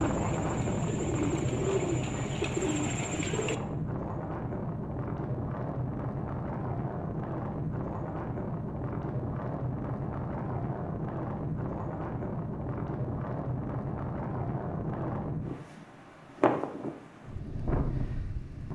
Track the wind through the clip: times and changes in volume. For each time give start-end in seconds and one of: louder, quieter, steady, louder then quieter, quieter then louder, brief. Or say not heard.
0.0-18.6 steady.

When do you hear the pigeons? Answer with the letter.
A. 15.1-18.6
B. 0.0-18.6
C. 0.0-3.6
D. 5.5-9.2
C.